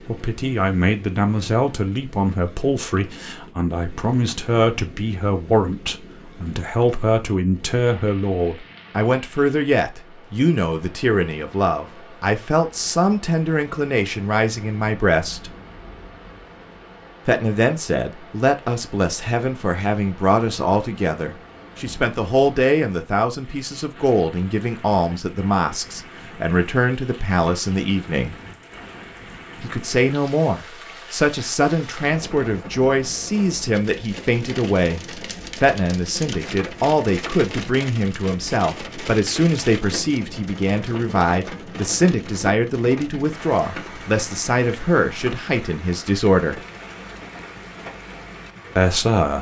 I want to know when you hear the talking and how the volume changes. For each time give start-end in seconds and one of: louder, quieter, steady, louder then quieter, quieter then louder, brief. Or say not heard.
0.1-15.5 steady
17.2-28.4 steady
29.6-46.6 steady
48.8-49.3 brief.